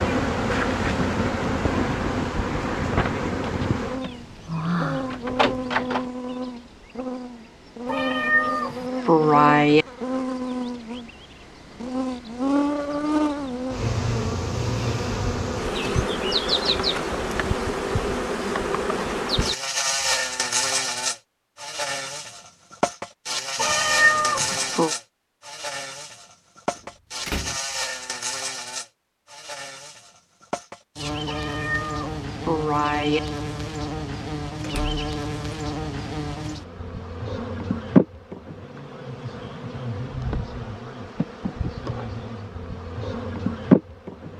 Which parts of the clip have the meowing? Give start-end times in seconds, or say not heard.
7.8-9.8, 23.6-24.9, 31.2-33.2.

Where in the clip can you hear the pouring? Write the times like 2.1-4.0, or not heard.
not heard.